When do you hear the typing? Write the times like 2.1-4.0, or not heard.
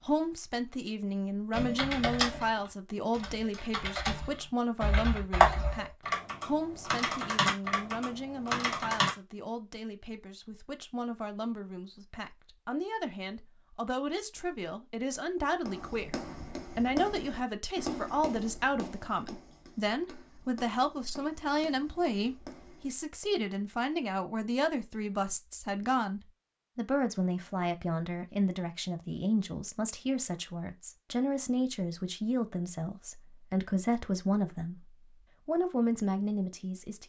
1.5-9.1.